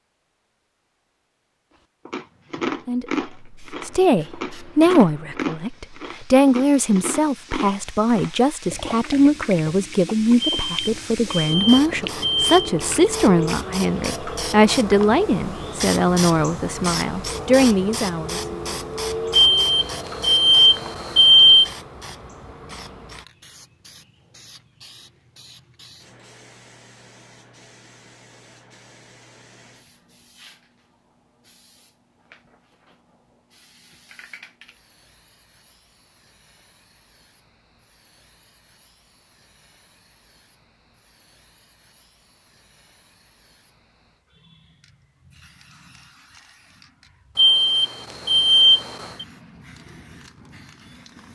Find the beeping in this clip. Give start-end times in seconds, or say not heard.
10.4-12.6, 19.3-21.7, 47.4-49.2.